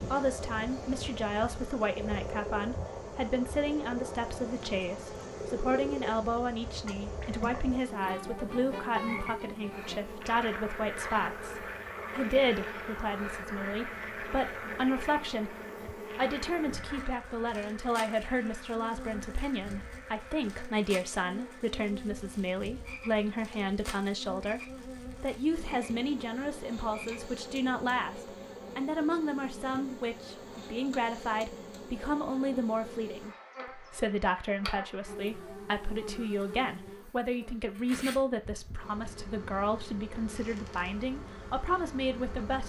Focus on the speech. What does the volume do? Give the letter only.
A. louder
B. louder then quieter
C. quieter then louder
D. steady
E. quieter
D.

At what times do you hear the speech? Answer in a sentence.
The speech can be heard from 0.1 to 15.6 s, from 16.1 to 24.6 s and from 25.2 to 42.6 s.